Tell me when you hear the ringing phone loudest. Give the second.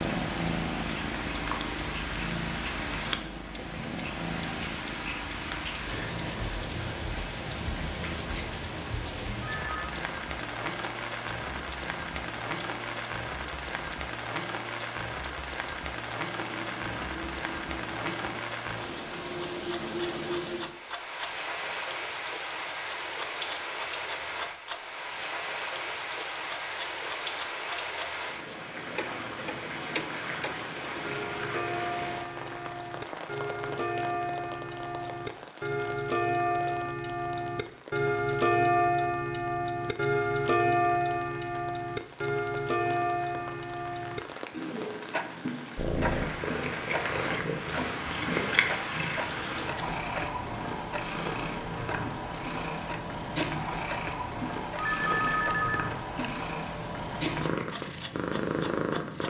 55 s.